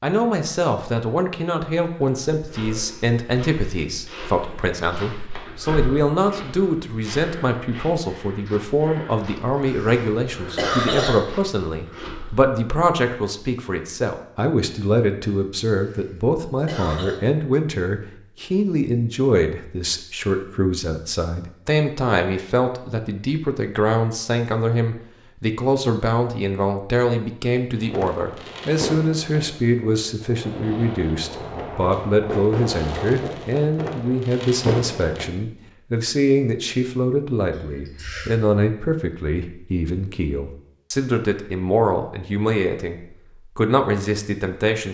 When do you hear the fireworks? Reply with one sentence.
You can hear the fireworks from 27.8 to 35.3 s.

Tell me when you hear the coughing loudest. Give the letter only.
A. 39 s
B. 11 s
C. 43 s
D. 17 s
B.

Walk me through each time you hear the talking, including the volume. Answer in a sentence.
The talking can be heard from 0.0 to 44.8 s, at a steady volume.